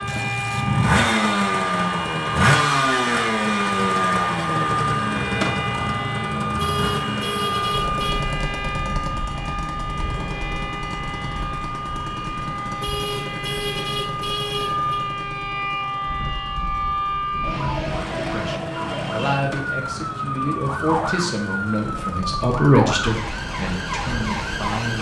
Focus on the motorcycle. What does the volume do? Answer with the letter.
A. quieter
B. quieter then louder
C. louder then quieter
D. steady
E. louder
A.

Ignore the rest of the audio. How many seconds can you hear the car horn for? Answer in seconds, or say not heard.
4 s.